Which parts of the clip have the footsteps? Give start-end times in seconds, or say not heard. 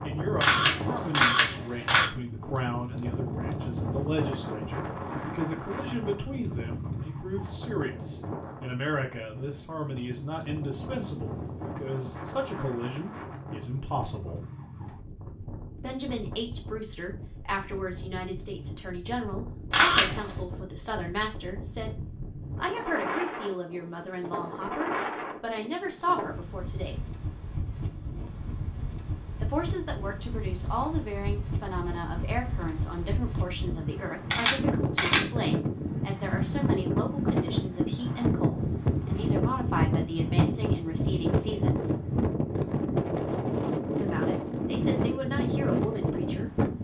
not heard.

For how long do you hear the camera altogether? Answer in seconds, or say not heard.
3 s.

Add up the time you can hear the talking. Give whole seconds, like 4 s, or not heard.
41 s.